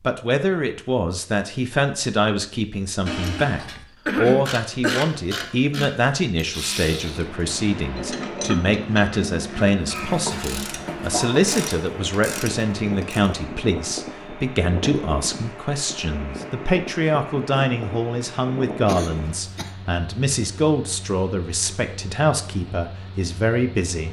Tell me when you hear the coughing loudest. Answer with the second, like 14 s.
4 s.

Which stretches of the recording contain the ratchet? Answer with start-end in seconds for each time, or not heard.
3.1-13.3.